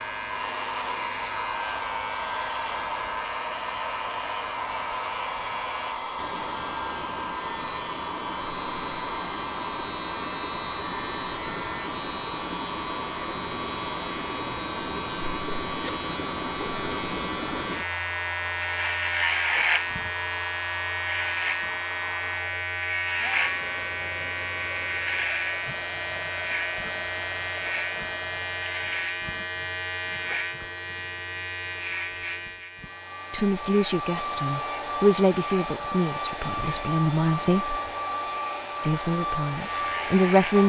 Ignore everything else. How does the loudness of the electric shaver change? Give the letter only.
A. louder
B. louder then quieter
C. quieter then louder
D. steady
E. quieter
B.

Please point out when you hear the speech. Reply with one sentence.
You can hear the speech from 33.3 to 37.8 s and from 38.8 to 40.6 s.